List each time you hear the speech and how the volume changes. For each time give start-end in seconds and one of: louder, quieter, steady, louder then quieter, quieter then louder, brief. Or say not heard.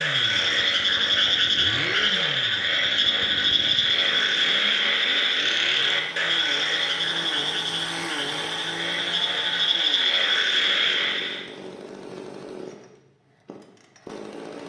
not heard.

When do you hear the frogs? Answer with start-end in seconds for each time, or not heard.
0.0-11.4.